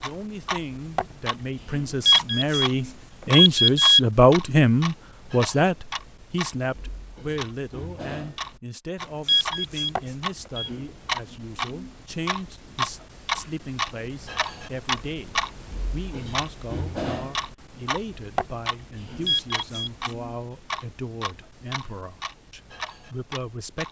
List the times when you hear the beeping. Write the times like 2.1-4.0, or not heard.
2.0-4.0, 9.2-10.7, 19.2-20.1.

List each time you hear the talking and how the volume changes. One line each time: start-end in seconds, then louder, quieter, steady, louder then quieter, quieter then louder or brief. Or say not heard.
0.0-23.8 quieter.